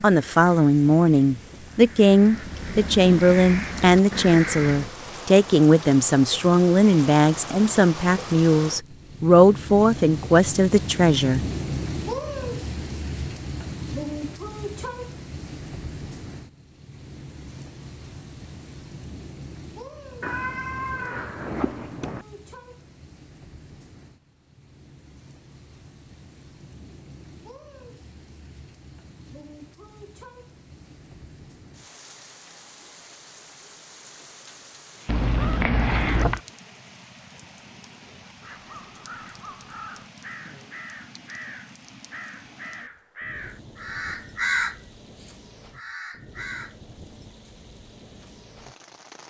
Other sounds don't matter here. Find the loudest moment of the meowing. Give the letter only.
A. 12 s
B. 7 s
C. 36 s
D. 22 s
C.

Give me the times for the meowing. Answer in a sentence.
You can hear the meowing from 20.2 to 22.2 s and from 35.0 to 36.4 s.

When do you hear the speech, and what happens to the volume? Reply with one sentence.
You can hear the speech from 0.0 to 11.4 s, at a steady volume.